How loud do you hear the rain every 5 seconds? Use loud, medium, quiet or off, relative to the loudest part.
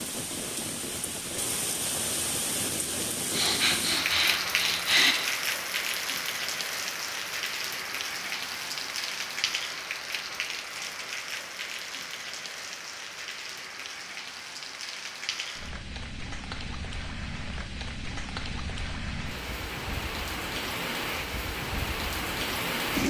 loud, loud, medium, medium, loud.